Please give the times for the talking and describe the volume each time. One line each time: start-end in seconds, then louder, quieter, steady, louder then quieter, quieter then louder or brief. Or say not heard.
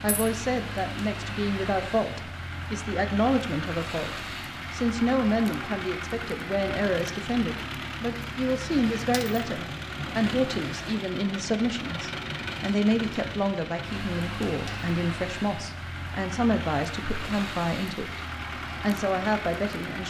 0.0-18.2 steady
18.8-20.0 brief.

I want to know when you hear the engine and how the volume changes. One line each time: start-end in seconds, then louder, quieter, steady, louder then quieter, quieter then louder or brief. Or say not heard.
0.0-20.0 steady.